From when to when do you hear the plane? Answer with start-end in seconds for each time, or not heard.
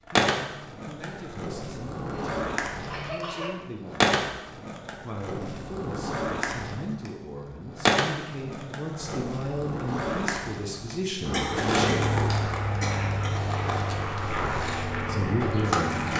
11.2-16.1.